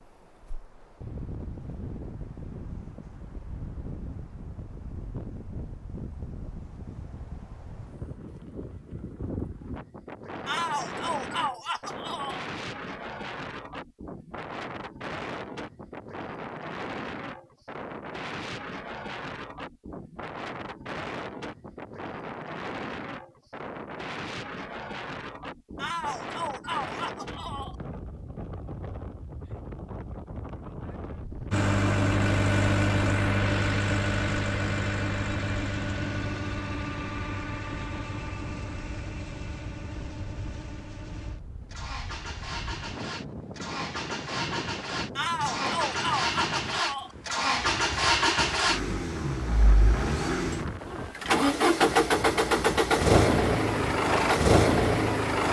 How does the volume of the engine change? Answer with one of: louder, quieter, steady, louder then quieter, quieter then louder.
quieter then louder.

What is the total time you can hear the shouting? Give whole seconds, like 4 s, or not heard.
6 s.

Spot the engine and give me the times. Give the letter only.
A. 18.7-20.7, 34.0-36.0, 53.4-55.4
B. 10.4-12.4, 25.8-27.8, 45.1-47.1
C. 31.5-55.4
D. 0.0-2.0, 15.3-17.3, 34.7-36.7
C.